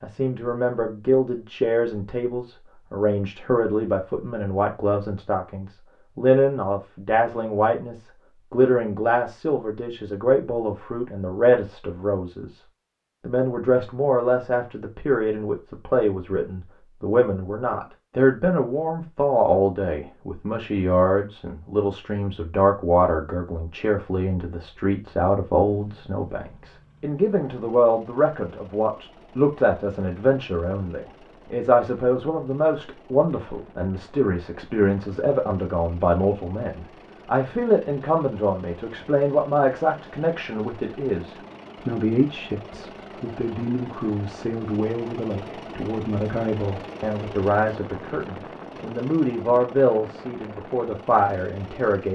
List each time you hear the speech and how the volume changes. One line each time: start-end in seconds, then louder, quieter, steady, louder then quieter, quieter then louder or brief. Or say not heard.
0.0-12.6 steady
13.2-52.1 steady.